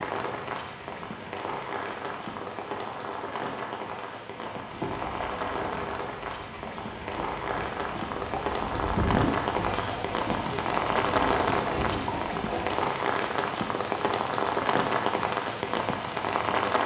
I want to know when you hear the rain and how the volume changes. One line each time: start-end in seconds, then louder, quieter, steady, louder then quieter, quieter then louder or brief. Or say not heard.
0.0-16.8 louder.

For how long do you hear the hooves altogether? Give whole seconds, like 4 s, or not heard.
8 s.